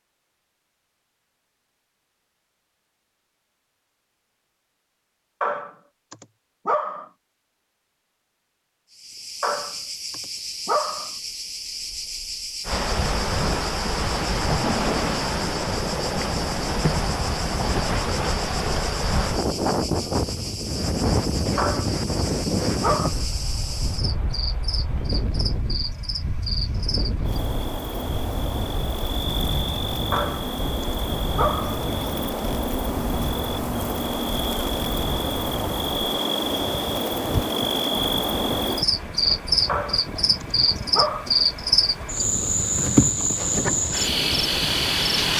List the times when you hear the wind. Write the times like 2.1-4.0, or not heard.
12.7-45.3.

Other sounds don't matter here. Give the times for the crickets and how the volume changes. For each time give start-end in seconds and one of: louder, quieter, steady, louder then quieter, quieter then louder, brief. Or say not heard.
8.9-45.3 louder.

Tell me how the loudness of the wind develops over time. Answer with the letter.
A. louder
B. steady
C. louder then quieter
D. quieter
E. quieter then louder
D.